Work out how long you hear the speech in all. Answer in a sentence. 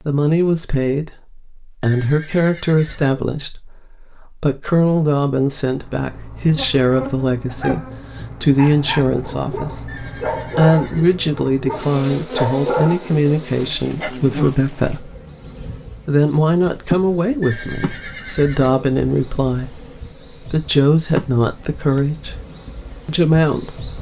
The speech can be heard for 22 seconds in total.